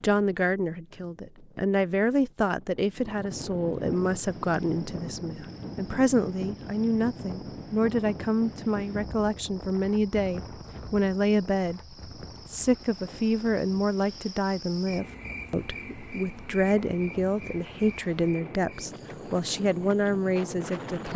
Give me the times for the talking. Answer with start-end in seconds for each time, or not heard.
0.0-21.1.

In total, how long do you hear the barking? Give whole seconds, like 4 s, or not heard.
not heard.